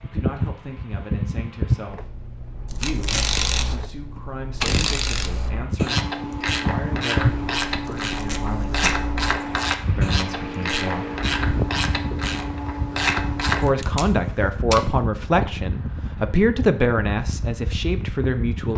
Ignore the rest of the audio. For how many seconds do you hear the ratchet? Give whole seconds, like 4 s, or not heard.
11 s.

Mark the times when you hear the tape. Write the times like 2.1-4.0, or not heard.
2.6-3.4, 7.8-9.0, 13.7-14.8.